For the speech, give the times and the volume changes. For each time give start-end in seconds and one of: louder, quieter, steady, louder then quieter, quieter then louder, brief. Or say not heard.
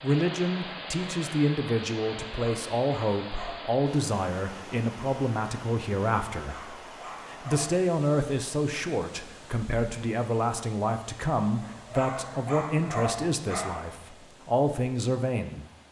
0.0-15.7 steady.